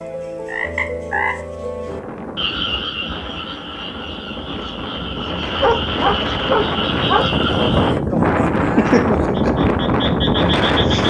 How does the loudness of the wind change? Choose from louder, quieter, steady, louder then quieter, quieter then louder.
louder.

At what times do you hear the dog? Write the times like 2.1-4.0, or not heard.
5.6-7.2.